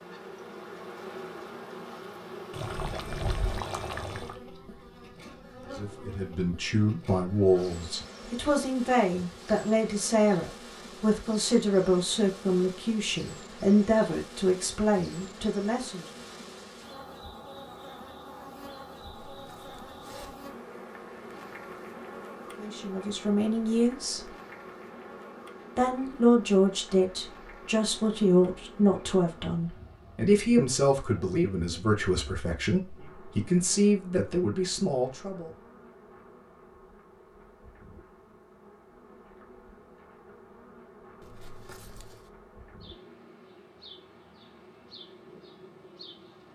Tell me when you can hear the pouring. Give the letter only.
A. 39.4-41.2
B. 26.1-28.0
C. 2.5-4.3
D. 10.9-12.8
C.